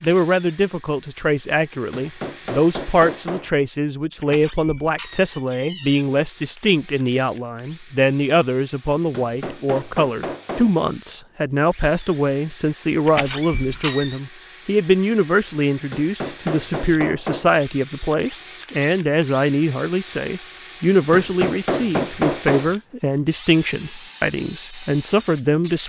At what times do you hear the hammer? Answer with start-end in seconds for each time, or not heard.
1.9-3.5, 9.1-10.8, 15.9-17.5, 21.1-22.8.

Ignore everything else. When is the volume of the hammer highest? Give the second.
22 s.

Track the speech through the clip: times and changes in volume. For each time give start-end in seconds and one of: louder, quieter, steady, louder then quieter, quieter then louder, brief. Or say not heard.
0.0-25.8 steady.